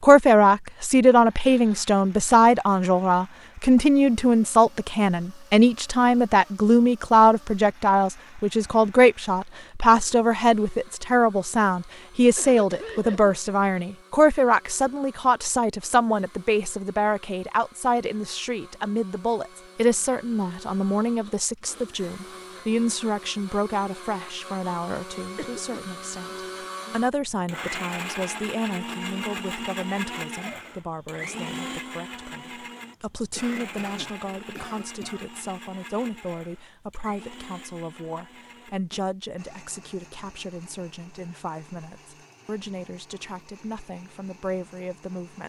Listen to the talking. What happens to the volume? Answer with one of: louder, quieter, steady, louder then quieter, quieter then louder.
quieter.